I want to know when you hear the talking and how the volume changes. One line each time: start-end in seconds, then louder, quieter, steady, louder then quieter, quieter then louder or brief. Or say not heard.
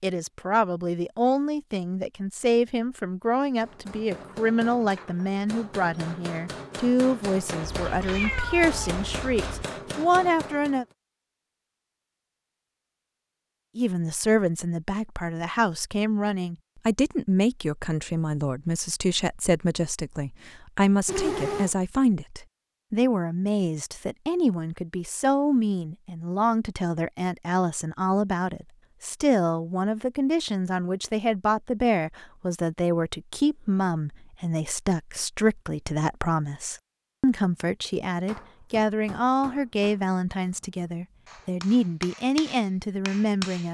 0.0-10.8 steady
13.8-43.6 steady.